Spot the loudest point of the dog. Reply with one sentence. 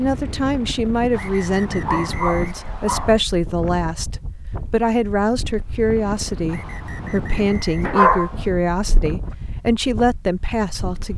The loudest moment of the dog is at 8 seconds.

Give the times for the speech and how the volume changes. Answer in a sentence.
The speech can be heard from 0.0 to 11.1 s, at a steady volume.